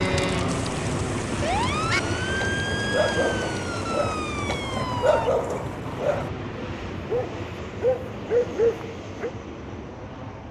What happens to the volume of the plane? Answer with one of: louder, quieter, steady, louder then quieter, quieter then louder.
quieter.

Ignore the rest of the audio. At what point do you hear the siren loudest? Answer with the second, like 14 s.
2 s.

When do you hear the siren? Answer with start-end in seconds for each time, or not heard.
0.0-5.3.